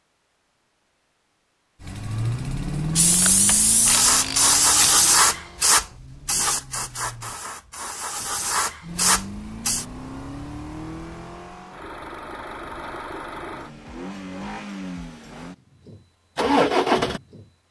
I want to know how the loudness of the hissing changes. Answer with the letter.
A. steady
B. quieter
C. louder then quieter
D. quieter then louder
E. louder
D.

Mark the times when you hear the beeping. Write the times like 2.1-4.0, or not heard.
not heard.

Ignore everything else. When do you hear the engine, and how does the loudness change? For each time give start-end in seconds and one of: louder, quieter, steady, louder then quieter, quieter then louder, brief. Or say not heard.
1.8-7.4 quieter
8.8-17.4 louder.